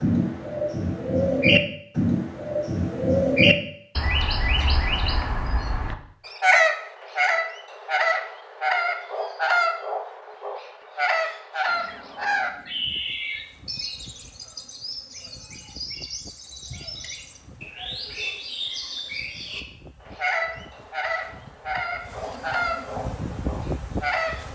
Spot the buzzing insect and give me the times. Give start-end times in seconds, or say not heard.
11.7-24.4.